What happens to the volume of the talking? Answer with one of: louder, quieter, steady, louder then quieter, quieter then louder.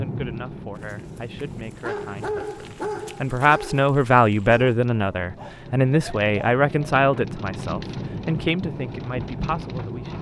louder then quieter.